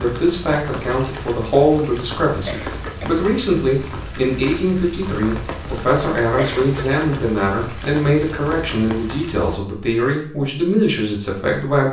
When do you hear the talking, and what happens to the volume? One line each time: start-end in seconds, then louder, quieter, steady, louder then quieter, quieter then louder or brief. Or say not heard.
0.0-11.8 steady.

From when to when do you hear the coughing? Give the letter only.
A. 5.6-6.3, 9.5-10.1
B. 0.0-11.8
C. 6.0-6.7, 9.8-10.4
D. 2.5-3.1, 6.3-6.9
D.